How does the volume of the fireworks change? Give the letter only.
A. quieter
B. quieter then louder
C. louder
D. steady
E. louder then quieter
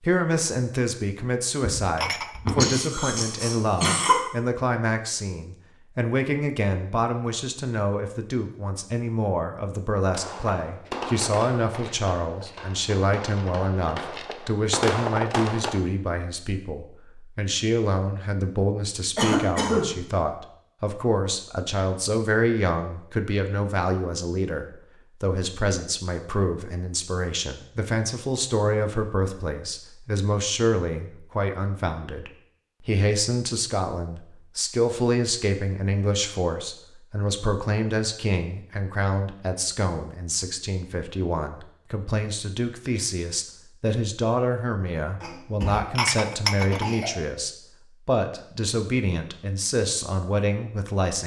B.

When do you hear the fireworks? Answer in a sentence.
You can hear the fireworks from 10.1 to 15.8 s.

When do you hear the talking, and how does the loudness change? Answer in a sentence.
You can hear the talking from 0.0 to 51.2 s, at a steady volume.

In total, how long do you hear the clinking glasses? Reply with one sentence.
You can hear the clinking glasses for 2 seconds altogether.